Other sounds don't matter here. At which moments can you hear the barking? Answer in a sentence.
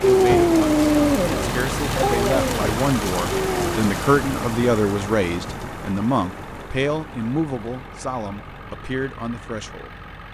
The barking can be heard from 0.0 to 3.9 s.